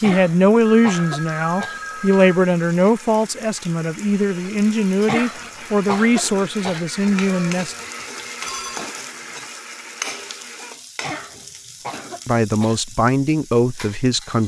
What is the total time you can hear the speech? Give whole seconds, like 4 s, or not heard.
10 s.